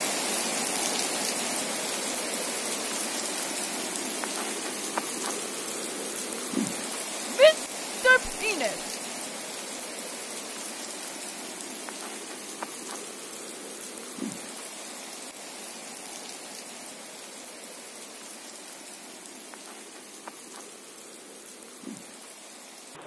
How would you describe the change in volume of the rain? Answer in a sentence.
The loudness of the rain goes down.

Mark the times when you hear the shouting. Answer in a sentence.
The shouting can be heard from 7.3 to 8.8 s.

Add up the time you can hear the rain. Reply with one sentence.
You can hear the rain for 23 seconds altogether.